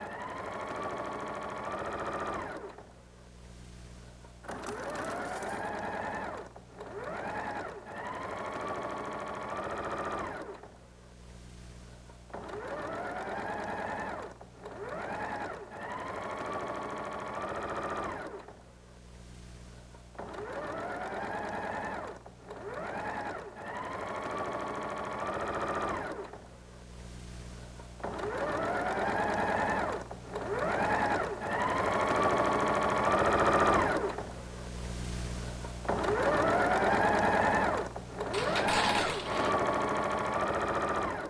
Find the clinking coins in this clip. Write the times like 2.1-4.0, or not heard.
4.4-5.7, 38.3-39.5.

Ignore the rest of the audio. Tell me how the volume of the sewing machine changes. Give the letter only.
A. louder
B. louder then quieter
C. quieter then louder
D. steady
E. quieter
A.